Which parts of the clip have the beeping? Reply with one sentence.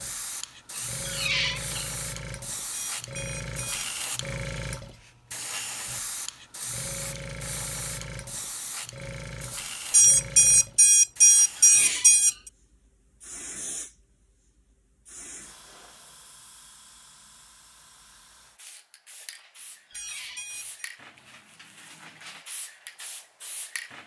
You can hear the beeping from 2.7 to 3.9 s, from 9.9 to 12.3 s and from 19.9 to 20.8 s.